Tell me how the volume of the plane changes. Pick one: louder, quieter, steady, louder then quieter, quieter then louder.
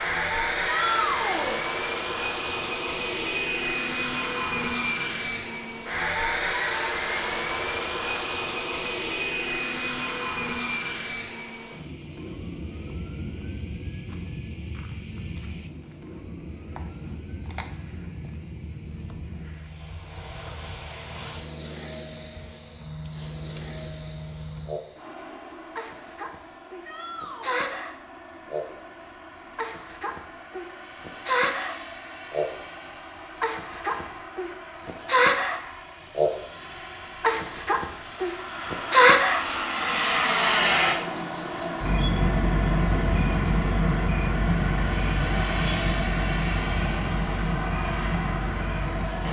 quieter then louder.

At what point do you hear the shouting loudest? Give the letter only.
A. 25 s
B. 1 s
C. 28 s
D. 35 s
B.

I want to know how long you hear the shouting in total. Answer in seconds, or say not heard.
2 s.